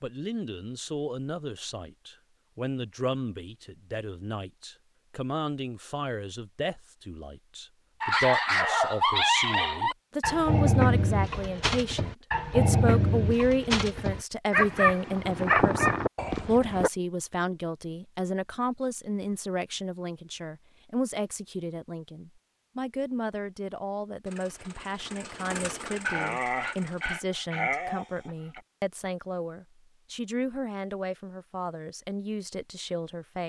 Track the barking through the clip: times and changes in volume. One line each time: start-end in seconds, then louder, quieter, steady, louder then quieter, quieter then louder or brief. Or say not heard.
8.0-16.9 steady
25.9-28.6 brief.